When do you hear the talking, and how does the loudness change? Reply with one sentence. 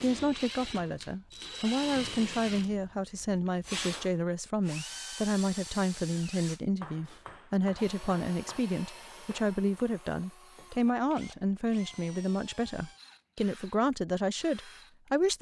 You can hear the talking from 0.0 to 15.3 s, at a steady volume.